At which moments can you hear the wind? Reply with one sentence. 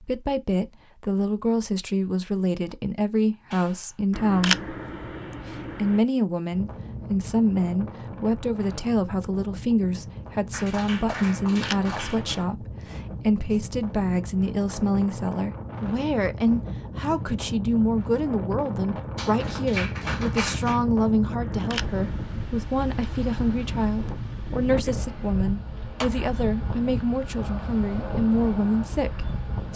The wind can be heard from 6.5 to 29.7 s.